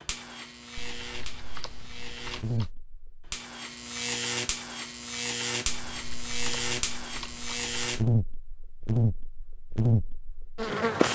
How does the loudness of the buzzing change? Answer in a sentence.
The loudness of the buzzing goes up.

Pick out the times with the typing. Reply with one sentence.
The typing can be heard from 0.8 to 2.7 s and from 5.7 to 7.8 s.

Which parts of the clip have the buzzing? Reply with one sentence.
The buzzing can be heard from 0.0 to 11.0 s.